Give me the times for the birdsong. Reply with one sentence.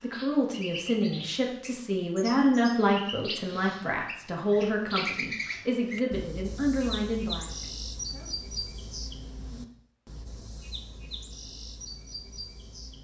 You can hear the birdsong from 0.0 to 12.9 s.